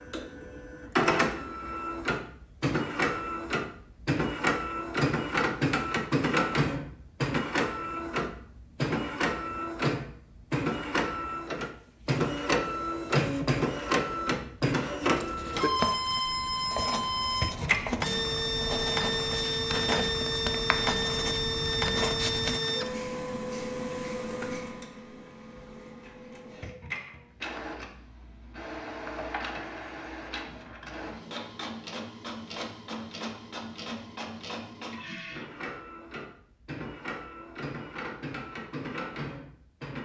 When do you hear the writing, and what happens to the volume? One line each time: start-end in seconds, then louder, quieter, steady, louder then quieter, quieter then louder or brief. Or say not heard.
15.1-22.6 steady.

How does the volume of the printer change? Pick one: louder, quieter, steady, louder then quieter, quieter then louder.
quieter.